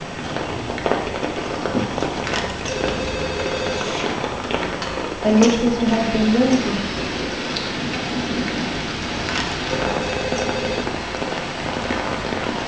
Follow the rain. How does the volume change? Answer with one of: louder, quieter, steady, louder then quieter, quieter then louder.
steady.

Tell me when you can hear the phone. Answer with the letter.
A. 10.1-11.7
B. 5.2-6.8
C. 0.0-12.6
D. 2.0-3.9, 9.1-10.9
D.